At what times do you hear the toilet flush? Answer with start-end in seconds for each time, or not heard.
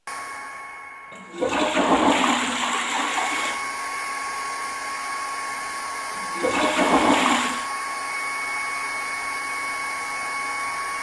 1.1-3.6, 6.2-7.7.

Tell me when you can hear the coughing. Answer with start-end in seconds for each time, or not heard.
not heard.